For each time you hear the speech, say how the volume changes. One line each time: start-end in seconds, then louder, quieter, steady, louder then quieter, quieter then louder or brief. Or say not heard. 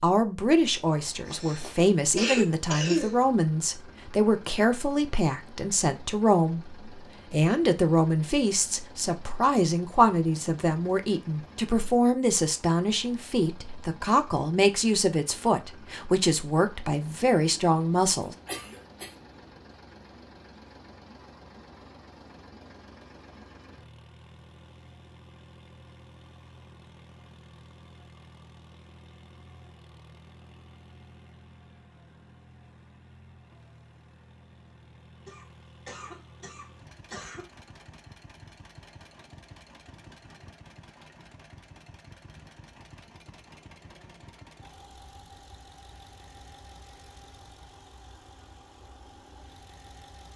0.0-18.4 steady.